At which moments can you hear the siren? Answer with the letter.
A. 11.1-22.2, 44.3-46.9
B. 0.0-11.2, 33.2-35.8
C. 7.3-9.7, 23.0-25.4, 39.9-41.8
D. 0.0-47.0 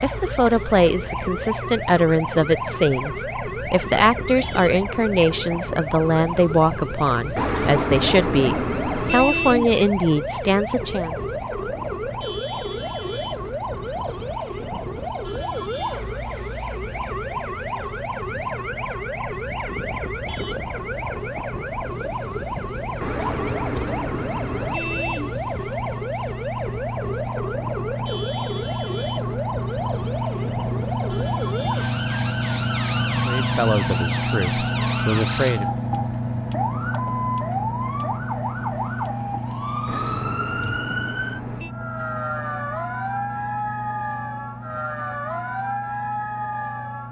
D.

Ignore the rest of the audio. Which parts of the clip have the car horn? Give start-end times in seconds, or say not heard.
7.3-9.7, 23.0-25.4, 39.9-41.8.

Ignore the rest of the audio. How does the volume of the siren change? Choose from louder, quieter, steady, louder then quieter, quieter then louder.
steady.